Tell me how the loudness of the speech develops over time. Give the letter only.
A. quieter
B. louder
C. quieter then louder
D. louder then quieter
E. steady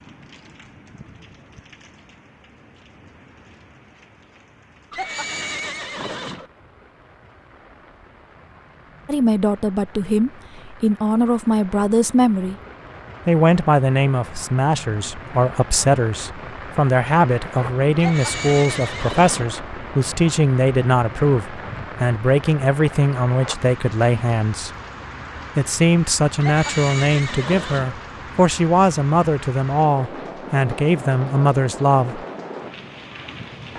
E.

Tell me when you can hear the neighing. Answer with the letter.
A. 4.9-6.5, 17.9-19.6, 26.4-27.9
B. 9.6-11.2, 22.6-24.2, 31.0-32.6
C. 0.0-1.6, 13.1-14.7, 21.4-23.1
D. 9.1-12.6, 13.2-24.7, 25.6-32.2
A.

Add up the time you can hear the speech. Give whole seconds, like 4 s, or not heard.
22 s.